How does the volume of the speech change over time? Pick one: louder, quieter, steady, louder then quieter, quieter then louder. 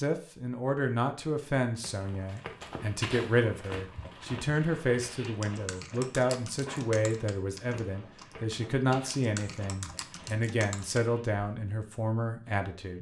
steady.